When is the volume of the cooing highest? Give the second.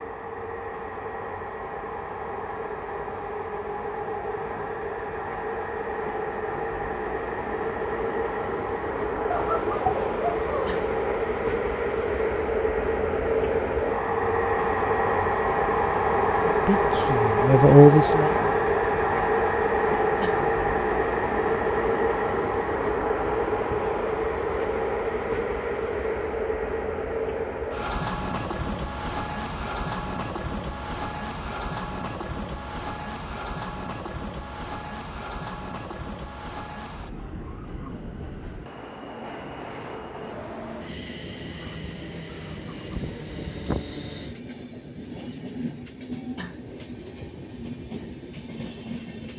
10 s.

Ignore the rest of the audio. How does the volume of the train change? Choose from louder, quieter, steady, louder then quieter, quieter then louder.
louder then quieter.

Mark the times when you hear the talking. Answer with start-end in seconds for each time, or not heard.
16.4-18.4.